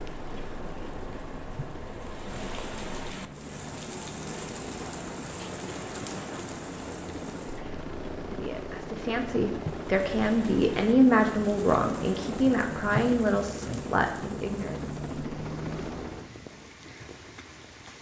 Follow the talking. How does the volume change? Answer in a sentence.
The loudness of the talking goes up, then down.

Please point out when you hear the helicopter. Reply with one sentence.
You can hear the helicopter from 0.0 to 16.4 s.